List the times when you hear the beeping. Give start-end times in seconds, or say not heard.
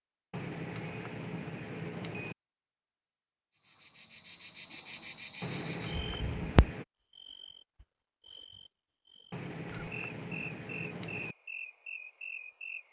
0.3-2.4, 5.4-6.8, 9.3-11.3.